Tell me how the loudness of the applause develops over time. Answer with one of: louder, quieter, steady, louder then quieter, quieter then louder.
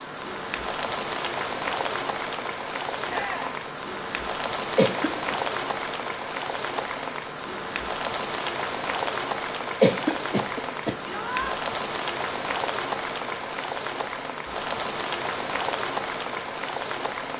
steady.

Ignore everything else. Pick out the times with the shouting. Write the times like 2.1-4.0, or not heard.
3.0-3.5, 11.0-11.6.